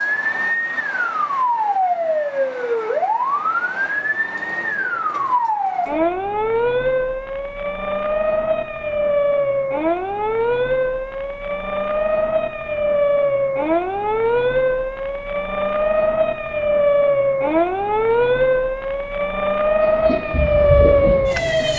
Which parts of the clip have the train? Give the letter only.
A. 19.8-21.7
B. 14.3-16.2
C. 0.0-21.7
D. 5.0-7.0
A.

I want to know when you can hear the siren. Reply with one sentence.
You can hear the siren from 0.0 to 21.7 s.